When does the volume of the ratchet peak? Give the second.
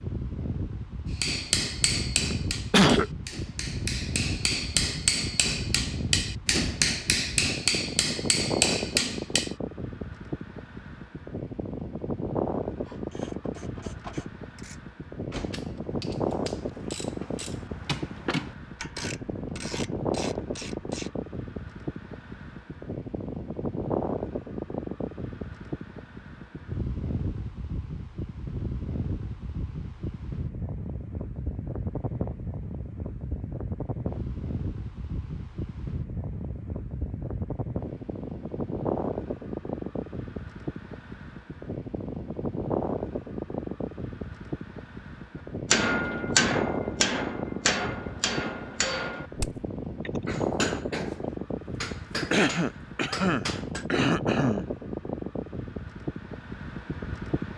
18 s.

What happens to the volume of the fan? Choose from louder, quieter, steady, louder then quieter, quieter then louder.
steady.